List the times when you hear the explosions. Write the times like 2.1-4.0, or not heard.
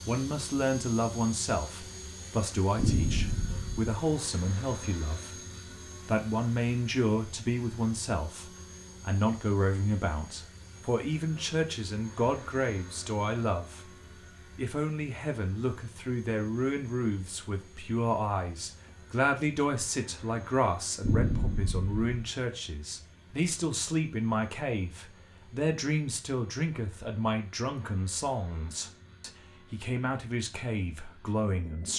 2.8-4.0, 21.0-22.0.